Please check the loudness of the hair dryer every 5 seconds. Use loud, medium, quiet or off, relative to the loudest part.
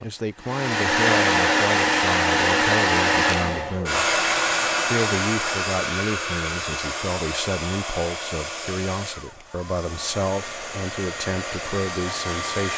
loud, medium, medium.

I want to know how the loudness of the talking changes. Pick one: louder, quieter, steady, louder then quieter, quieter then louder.
steady.